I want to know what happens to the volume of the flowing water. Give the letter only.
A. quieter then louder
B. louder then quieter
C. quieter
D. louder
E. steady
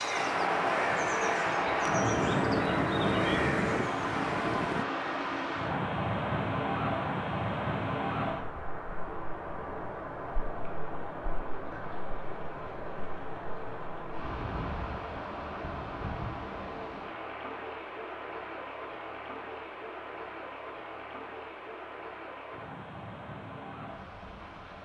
C.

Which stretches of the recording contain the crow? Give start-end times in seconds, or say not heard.
0.0-4.8.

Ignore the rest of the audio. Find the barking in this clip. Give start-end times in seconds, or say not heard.
not heard.